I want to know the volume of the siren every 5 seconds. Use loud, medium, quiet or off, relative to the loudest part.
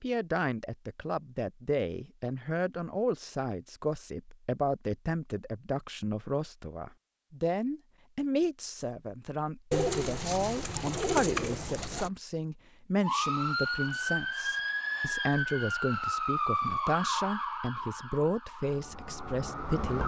off, off, loud, loud.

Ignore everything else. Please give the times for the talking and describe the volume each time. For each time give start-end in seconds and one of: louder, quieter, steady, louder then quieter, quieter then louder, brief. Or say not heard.
0.0-20.0 steady.